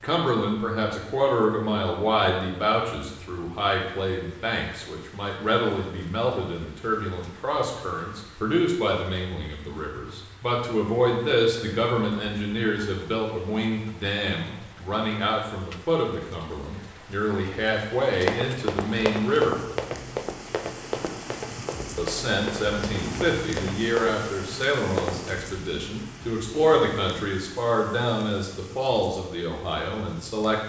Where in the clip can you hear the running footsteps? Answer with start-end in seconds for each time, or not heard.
18.2-25.3.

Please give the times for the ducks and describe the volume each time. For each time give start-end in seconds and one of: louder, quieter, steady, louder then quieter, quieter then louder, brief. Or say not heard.
not heard.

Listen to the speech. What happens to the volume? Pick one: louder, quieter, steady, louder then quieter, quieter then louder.
steady.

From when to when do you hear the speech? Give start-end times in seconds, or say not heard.
0.0-19.6, 21.9-30.6.